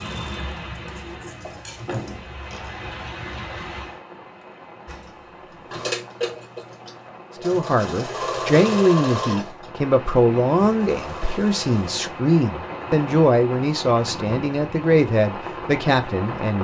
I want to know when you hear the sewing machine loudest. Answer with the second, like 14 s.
9 s.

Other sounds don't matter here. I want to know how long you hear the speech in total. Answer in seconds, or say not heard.
9 s.